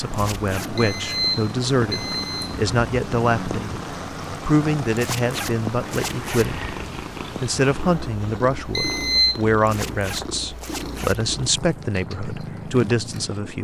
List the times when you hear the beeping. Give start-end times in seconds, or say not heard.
0.8-2.5, 8.8-9.4.